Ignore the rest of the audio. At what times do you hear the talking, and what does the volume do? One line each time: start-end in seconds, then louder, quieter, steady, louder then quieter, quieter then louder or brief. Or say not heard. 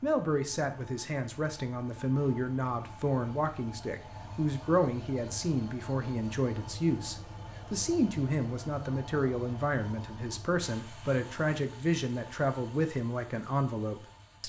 0.0-14.4 steady.